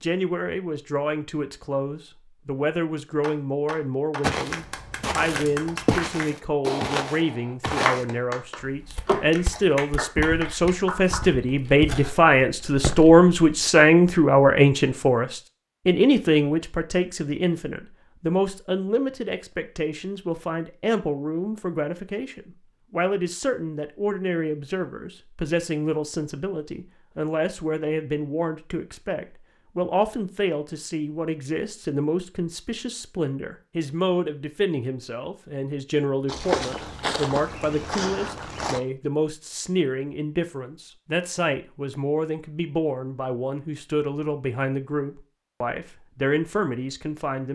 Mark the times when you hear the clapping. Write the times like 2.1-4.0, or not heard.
3.2-11.2.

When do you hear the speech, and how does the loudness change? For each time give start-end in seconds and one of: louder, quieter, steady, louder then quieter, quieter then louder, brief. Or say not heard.
0.0-47.5 louder then quieter.